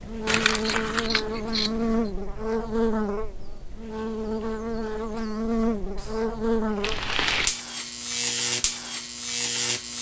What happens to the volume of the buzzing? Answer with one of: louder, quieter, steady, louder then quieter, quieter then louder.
steady.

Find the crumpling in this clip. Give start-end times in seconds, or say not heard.
0.2-1.2, 6.8-7.5.